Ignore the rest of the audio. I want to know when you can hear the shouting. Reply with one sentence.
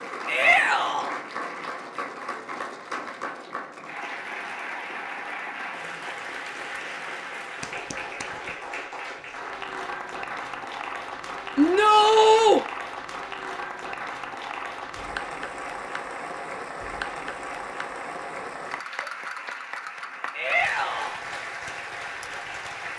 You can hear the shouting from 0.2 to 1.1 s, from 11.6 to 12.6 s and from 20.3 to 21.2 s.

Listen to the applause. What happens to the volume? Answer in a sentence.
The volume of the applause stays about the same.